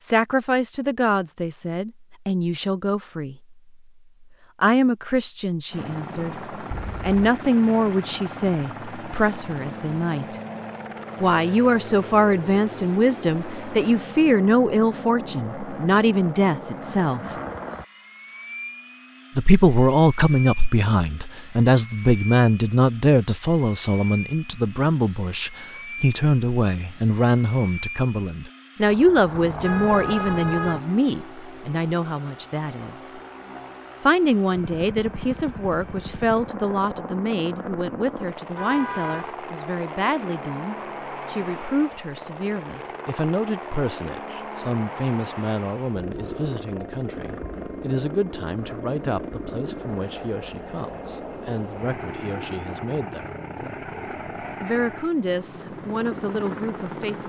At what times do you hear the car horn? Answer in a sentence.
The car horn can be heard from 6.7 to 7.2 s, from 29.3 to 30.9 s and from 38.5 to 39.4 s.